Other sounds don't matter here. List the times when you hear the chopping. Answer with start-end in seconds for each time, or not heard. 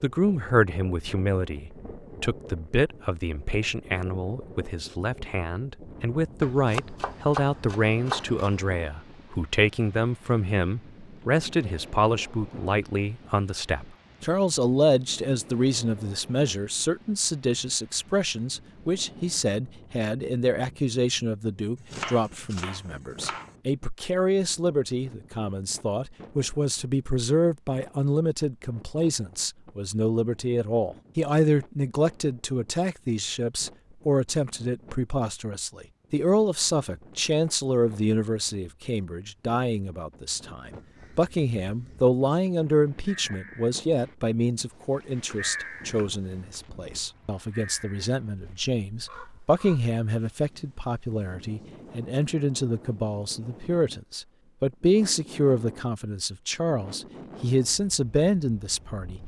6.4-8.6, 21.8-23.6, 44.7-46.6.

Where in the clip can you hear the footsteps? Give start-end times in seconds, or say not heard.
not heard.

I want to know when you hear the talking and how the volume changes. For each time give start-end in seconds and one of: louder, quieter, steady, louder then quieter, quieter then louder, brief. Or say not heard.
0.0-59.2 steady.